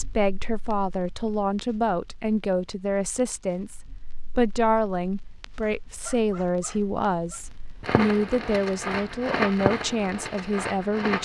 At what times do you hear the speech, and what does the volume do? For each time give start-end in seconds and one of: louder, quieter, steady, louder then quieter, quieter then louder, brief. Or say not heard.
0.0-11.2 steady.